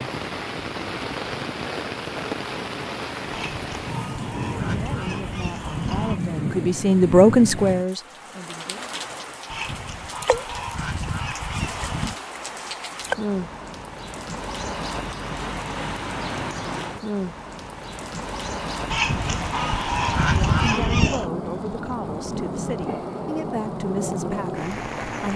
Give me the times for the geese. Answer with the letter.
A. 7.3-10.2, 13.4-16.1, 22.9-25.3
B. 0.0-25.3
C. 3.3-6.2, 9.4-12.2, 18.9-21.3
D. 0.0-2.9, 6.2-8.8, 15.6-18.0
C.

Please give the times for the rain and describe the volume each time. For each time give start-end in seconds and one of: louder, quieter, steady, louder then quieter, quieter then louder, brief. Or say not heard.
0.0-25.3 steady.